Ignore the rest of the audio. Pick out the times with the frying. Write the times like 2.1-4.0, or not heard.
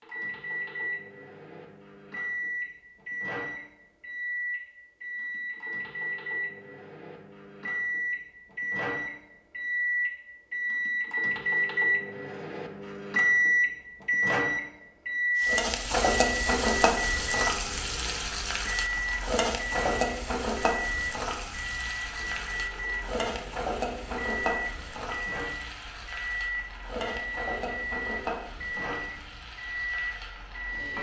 15.4-30.9.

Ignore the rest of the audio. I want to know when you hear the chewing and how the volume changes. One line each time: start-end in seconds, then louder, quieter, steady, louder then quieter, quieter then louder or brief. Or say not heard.
not heard.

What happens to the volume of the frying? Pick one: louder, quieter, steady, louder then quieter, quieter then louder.
quieter.